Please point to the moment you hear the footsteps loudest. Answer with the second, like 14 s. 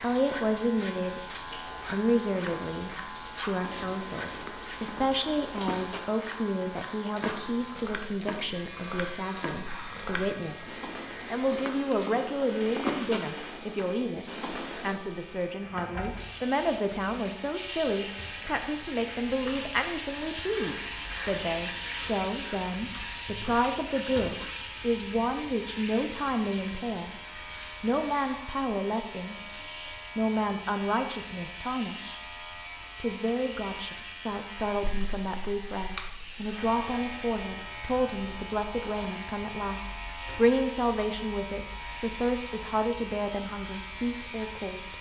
13 s.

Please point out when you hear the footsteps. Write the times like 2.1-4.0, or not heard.
3.6-14.9.